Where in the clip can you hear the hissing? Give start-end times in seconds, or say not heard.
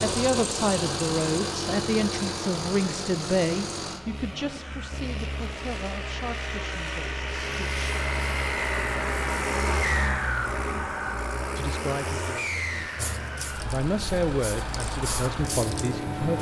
12.9-16.3.